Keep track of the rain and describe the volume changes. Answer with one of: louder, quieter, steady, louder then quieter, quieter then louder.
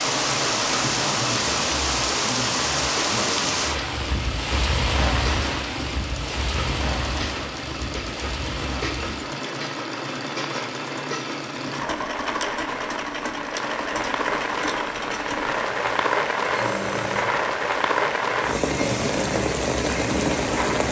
quieter then louder.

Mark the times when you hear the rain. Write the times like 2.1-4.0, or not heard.
0.0-20.8.